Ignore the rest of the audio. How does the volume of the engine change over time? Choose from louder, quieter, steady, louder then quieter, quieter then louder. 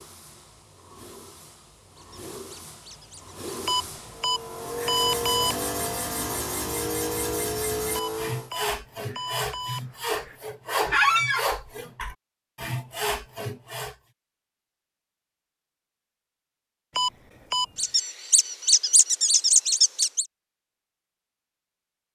louder.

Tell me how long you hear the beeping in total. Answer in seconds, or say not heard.
5 s.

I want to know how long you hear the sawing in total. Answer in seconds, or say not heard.
9 s.